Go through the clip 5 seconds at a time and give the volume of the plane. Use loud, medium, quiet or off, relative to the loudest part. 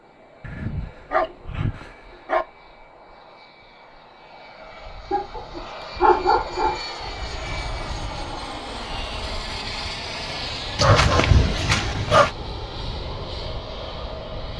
quiet, loud, loud.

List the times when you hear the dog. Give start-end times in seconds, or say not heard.
0.4-2.5, 5.1-6.8, 10.8-12.3.